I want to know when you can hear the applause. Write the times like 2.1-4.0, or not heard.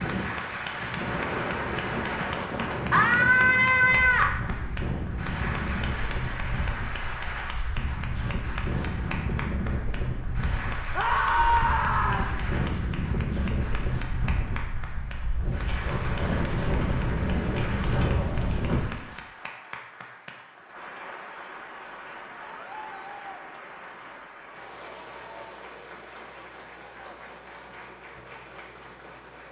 0.0-29.4.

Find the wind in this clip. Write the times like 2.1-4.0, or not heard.
0.0-19.1.